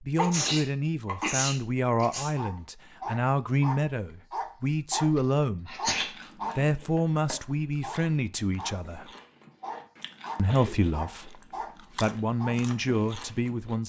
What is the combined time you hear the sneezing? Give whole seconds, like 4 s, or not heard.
4 s.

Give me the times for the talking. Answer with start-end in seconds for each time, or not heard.
0.0-5.9, 6.5-9.1, 10.3-13.8.